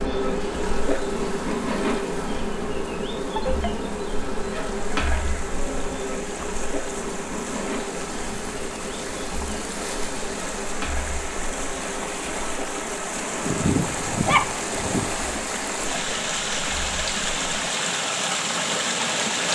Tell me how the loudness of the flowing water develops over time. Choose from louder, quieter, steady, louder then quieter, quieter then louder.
louder.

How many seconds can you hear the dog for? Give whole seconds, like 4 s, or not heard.
2 s.